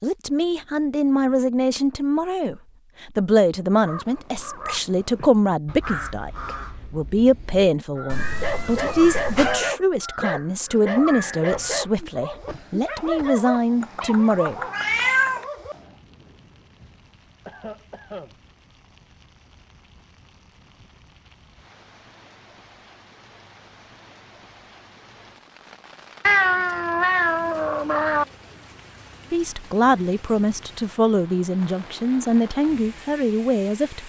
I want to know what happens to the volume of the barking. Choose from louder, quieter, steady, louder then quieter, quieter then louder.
quieter.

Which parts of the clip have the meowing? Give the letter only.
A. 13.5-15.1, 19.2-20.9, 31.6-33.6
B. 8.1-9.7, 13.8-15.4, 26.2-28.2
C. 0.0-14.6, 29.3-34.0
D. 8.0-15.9
B.